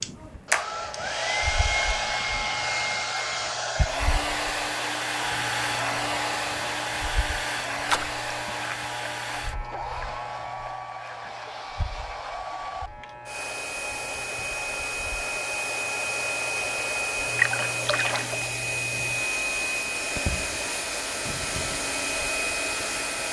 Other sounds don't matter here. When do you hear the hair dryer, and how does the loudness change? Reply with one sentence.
The hair dryer can be heard from 0.0 to 23.2 s, getting quieter then louder.